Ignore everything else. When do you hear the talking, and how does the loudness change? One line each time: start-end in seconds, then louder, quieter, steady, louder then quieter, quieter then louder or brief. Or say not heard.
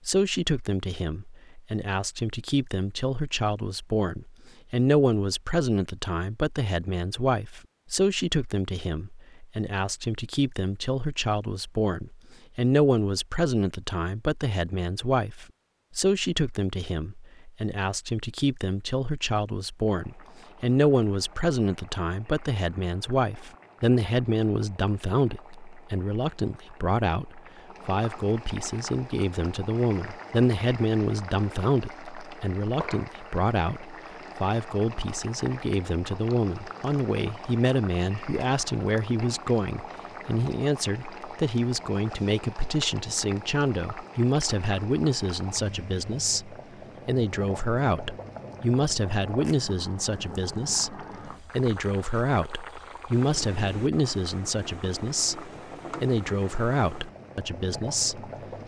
0.1-58.3 steady.